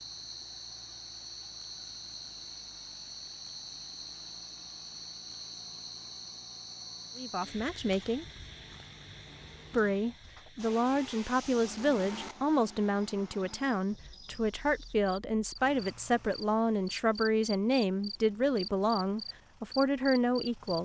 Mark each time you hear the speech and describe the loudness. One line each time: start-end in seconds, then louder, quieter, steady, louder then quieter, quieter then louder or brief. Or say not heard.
7.2-8.2 brief
9.7-20.7 steady.